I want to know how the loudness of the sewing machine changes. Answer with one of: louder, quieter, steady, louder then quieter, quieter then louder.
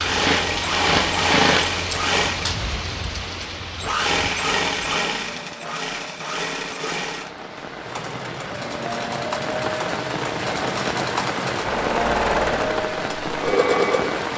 quieter then louder.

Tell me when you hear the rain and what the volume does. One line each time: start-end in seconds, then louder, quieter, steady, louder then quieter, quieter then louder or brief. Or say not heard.
0.0-14.3 quieter then louder.